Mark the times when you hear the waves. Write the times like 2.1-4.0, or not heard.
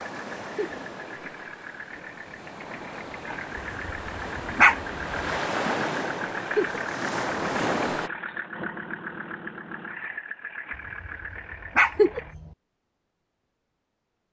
0.0-8.1.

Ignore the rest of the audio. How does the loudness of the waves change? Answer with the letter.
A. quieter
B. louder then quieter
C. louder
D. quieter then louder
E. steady
C.